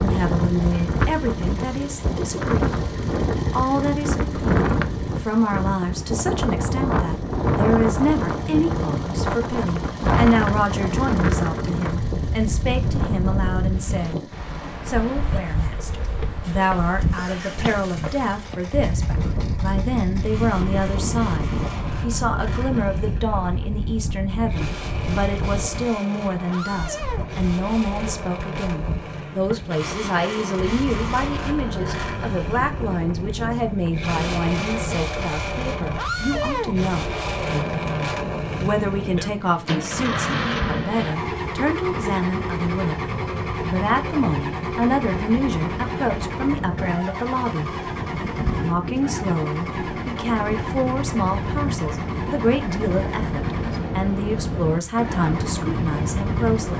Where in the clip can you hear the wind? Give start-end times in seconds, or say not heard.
0.0-56.7.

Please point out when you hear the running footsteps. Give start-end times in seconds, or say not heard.
not heard.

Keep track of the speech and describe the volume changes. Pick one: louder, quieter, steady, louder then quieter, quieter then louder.
steady.